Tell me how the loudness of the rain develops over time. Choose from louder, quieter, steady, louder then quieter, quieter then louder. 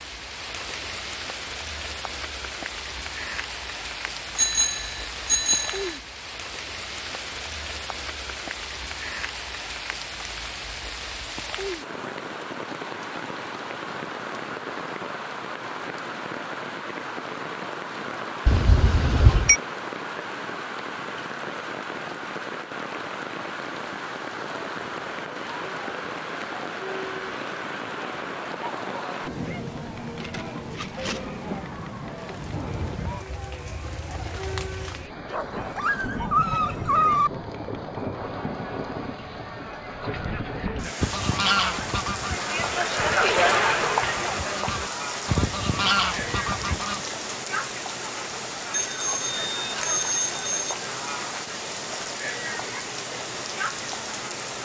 steady.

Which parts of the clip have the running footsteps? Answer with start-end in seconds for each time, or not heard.
not heard.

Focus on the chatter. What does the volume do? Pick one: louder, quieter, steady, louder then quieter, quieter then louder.
louder then quieter.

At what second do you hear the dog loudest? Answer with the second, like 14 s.
37 s.